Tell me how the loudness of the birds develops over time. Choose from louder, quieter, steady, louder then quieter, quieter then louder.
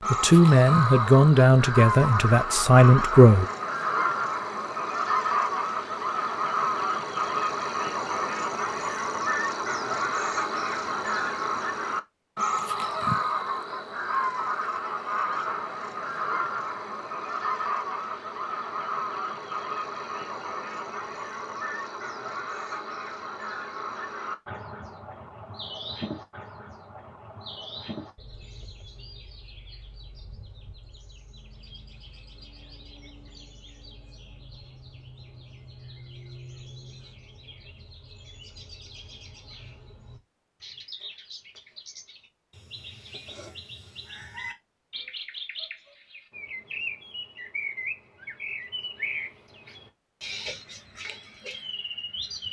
quieter then louder.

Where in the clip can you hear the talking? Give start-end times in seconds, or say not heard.
0.1-3.5.